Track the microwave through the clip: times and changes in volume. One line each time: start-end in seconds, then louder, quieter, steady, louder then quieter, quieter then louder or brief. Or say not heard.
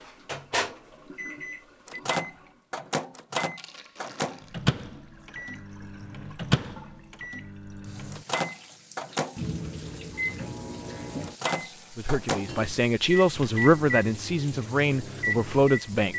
0.0-16.1 steady.